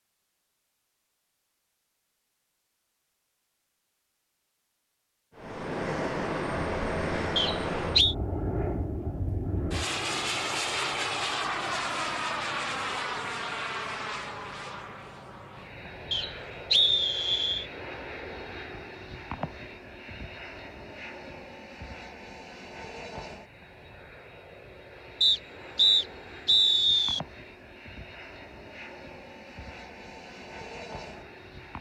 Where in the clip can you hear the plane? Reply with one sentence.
The plane can be heard from 5.3 to 31.7 s.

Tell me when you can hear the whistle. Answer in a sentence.
You can hear the whistle from 7.3 to 8.2 s, from 16.1 to 17.6 s and from 25.2 to 27.2 s.